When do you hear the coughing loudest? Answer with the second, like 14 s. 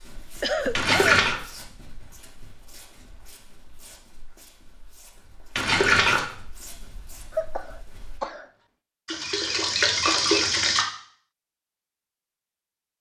1 s.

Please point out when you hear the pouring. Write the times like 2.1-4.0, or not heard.
0.8-1.4, 5.5-6.2, 9.1-10.8.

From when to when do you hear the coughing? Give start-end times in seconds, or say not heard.
0.4-1.1, 7.3-8.4.